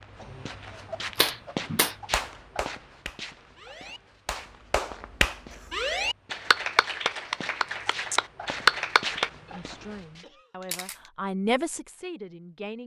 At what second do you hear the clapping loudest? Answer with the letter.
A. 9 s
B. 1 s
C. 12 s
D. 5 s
A.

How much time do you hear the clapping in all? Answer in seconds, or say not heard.
8 s.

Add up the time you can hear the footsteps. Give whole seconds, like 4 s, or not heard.
10 s.